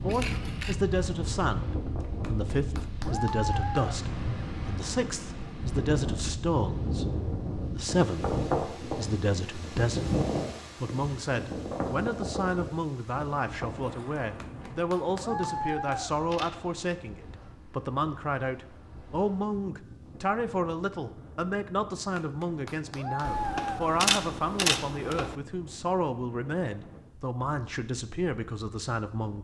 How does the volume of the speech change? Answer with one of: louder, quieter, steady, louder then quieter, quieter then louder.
steady.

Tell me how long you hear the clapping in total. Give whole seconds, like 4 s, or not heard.
5 s.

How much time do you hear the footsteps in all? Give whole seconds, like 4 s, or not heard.
not heard.